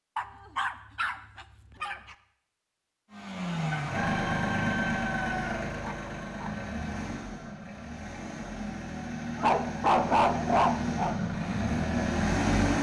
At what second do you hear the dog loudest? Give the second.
10 s.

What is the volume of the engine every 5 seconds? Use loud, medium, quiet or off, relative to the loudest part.
loud, medium, loud.